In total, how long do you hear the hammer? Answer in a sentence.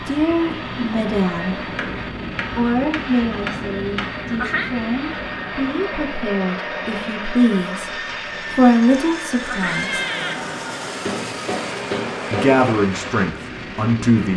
You can hear the hammer for 4 seconds altogether.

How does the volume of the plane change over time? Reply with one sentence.
The loudness of the plane stays about the same.